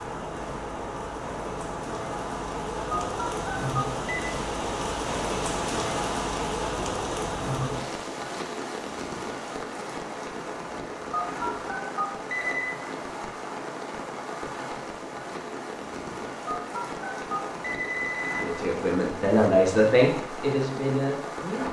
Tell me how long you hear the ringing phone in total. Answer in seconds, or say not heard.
5 s.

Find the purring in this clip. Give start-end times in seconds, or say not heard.
not heard.